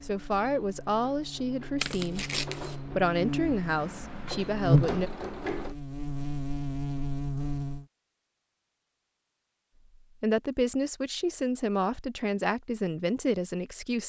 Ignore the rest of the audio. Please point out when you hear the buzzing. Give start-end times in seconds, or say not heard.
0.0-7.8.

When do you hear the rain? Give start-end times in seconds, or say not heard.
not heard.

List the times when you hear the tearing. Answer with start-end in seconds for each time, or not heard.
1.8-2.8.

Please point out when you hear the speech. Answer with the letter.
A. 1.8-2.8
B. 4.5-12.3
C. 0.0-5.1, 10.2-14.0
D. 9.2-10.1
C.